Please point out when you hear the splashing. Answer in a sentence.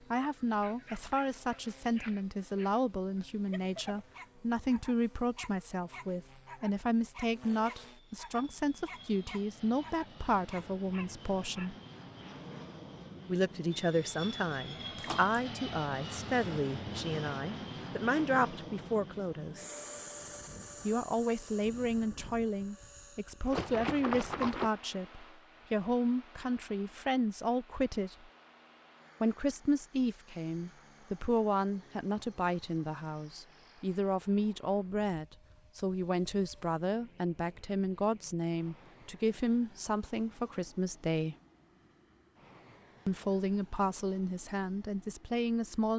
You can hear the splashing from 14.9 to 15.3 s and from 23.5 to 24.7 s.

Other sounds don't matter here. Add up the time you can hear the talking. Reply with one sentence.
The talking can be heard for 40 seconds in total.